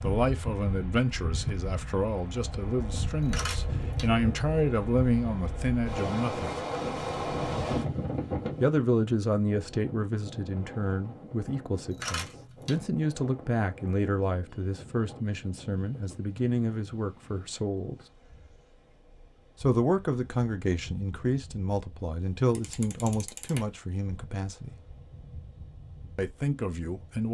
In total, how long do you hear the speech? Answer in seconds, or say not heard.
22 s.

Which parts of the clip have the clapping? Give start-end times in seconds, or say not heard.
not heard.